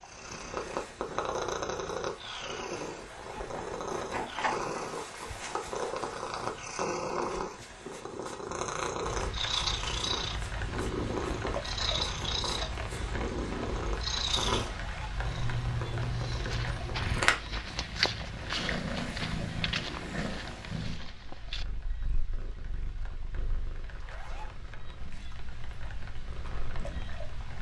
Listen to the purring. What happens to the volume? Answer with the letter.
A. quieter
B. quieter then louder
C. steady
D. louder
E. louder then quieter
A.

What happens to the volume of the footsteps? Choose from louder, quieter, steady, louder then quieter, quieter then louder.
louder then quieter.